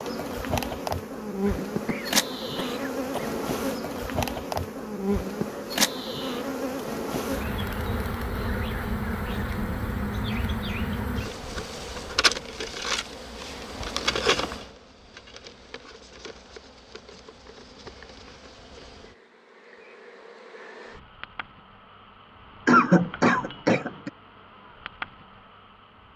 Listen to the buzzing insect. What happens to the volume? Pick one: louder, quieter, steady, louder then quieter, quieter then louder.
quieter.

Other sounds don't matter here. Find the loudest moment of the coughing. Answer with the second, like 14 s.
23 s.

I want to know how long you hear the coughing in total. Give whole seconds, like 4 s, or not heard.
3 s.